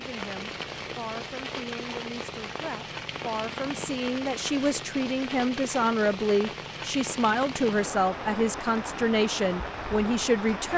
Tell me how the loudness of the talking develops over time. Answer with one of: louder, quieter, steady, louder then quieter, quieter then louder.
louder.